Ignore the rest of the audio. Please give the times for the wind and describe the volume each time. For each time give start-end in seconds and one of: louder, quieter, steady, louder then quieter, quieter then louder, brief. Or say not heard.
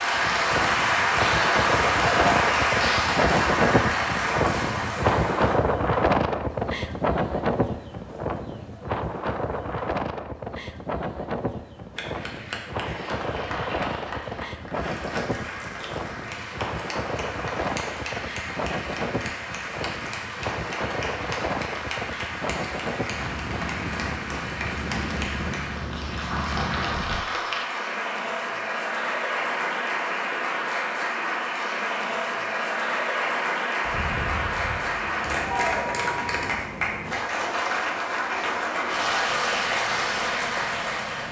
0.0-27.2 quieter.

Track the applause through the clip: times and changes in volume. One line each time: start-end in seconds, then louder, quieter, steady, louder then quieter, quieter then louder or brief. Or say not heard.
0.0-5.5 quieter
11.9-41.2 louder.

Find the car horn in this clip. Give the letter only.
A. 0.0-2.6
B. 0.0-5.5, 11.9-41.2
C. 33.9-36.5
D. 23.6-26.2
C.